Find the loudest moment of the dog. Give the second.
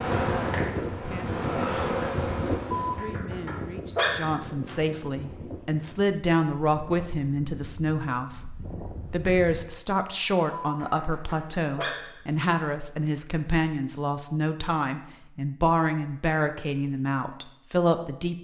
4 s.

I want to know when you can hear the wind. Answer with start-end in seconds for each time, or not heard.
0.0-9.7.